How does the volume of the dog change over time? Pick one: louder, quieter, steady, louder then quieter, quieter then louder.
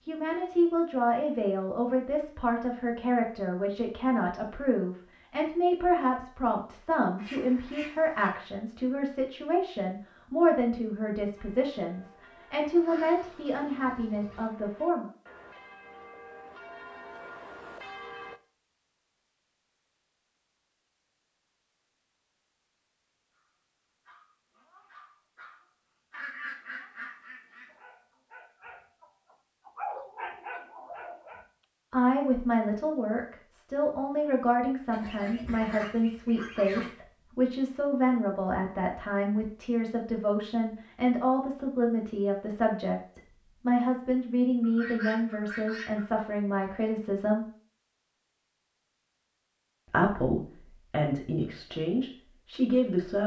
louder.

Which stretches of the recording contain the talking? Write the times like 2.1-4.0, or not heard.
0.1-15.1, 31.9-47.5, 49.9-53.2.